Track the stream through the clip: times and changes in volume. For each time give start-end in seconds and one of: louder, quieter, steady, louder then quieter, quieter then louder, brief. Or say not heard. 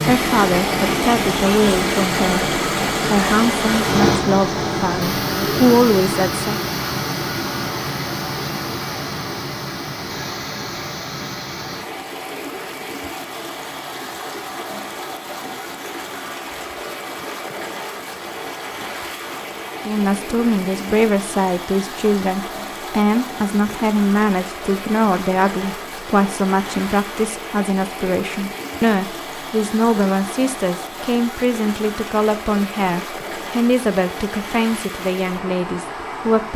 0.0-36.5 quieter.